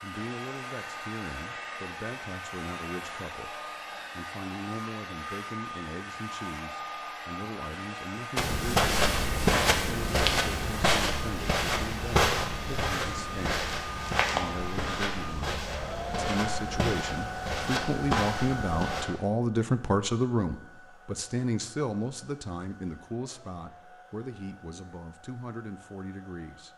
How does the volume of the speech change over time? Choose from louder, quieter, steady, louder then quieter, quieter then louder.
louder then quieter.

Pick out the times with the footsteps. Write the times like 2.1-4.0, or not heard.
8.3-19.1.